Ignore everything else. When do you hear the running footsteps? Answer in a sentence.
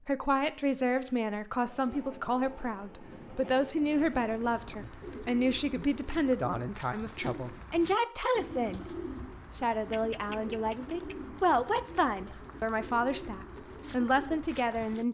The running footsteps can't be heard in this clip.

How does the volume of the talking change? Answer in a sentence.
The loudness of the talking stays about the same.